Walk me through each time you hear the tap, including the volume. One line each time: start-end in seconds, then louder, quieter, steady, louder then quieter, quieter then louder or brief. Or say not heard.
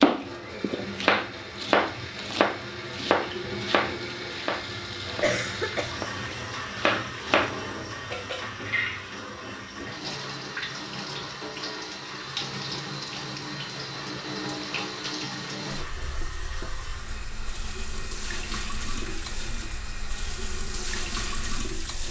0.0-22.0 steady.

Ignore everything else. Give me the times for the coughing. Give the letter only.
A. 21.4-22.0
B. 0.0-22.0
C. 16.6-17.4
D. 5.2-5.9
D.